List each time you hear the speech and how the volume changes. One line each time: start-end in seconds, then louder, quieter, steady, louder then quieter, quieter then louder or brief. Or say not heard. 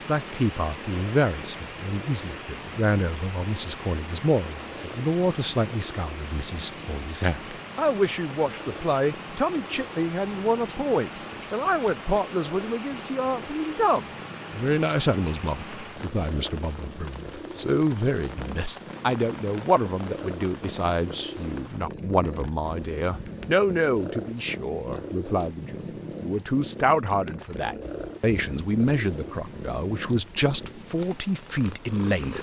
0.1-32.3 steady.